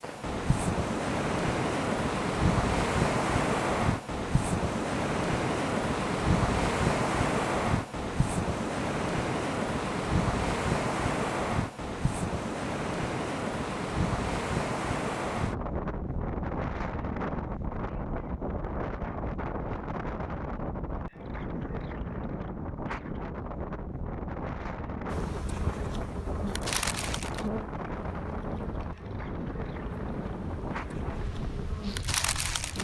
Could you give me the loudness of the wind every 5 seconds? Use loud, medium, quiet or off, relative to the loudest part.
loud, loud, loud, medium, medium, medium, medium.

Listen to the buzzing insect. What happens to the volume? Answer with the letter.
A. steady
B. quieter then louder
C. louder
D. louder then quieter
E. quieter
B.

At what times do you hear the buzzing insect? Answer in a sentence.
The buzzing insect can be heard from 25.1 to 32.8 s.